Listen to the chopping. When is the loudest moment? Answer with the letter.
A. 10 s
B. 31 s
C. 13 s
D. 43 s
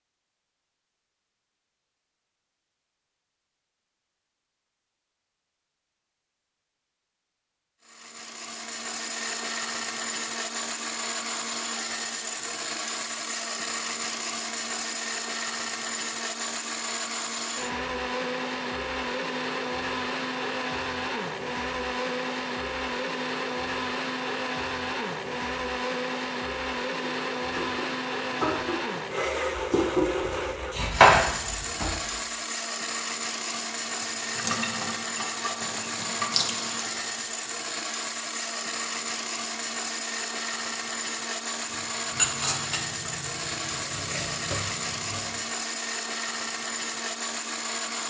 B.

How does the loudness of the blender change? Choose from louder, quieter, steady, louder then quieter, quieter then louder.
steady.